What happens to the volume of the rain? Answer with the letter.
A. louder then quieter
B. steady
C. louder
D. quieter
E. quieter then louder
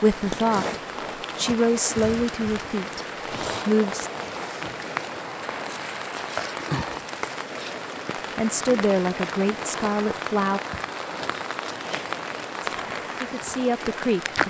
B.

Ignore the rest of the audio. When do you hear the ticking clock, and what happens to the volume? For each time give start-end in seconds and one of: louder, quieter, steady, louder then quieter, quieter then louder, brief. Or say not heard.
not heard.